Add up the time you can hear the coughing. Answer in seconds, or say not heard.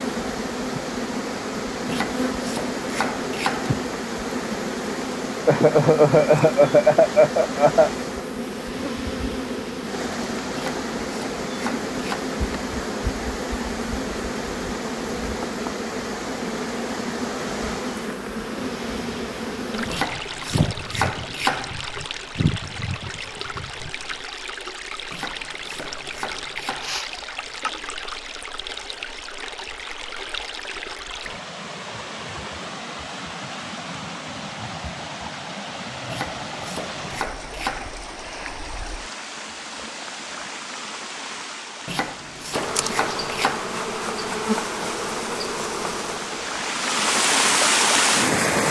3 s.